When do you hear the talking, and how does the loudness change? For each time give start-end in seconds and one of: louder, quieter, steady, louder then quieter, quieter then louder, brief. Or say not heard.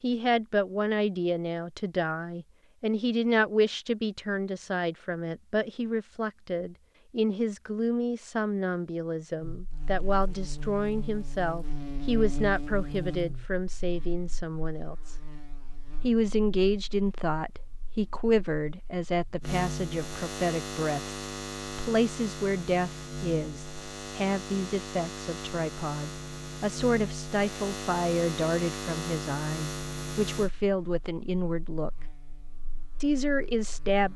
0.0-15.2 steady
16.0-31.9 steady
33.0-34.1 brief.